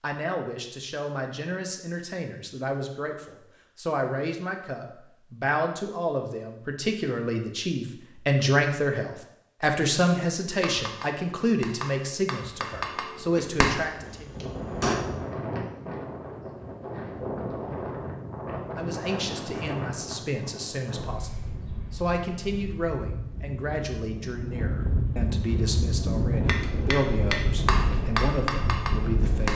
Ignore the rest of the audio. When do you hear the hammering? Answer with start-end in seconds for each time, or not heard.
10.6-15.0, 26.4-29.5.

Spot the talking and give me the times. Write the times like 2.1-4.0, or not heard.
0.0-14.3, 18.8-29.5.